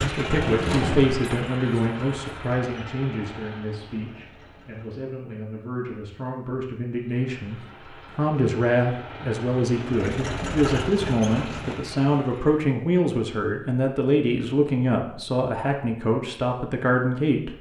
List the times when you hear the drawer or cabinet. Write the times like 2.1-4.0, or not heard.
0.2-1.2.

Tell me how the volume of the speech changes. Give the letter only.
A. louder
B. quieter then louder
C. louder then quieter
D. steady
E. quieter
B.